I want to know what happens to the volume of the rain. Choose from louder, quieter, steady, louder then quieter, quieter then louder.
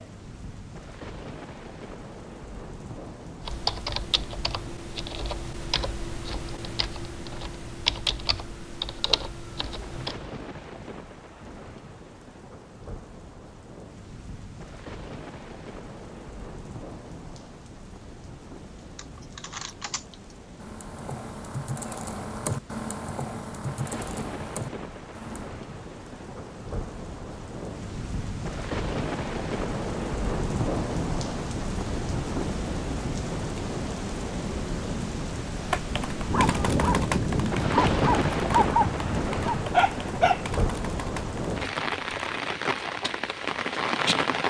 louder.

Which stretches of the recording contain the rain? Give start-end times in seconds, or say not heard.
0.0-44.4.